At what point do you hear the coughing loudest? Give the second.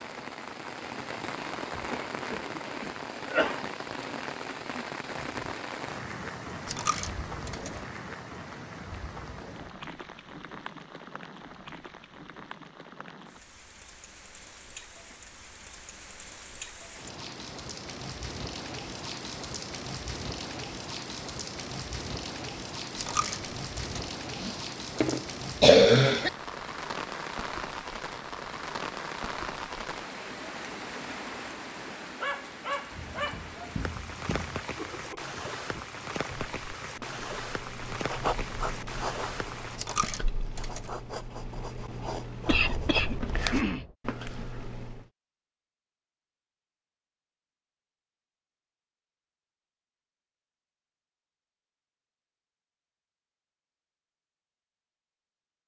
26 s.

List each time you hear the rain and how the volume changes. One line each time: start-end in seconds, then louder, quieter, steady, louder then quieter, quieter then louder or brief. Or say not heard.
0.0-39.8 quieter then louder.